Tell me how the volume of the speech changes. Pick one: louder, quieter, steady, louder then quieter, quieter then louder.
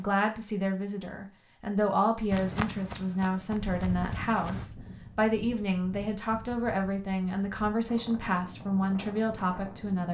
steady.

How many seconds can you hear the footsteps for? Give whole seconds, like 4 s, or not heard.
2 s.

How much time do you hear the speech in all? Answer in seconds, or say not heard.
10 s.